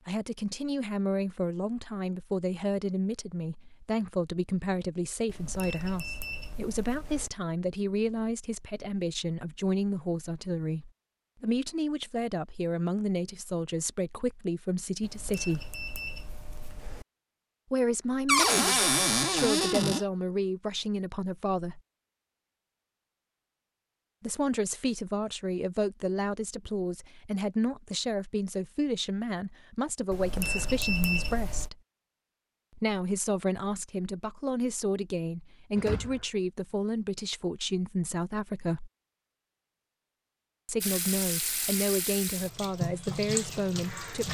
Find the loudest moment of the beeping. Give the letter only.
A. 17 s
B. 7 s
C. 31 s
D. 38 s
C.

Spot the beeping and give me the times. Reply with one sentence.
You can hear the beeping from 5.2 to 7.3 s, from 15.0 to 17.1 s and from 30.1 to 31.7 s.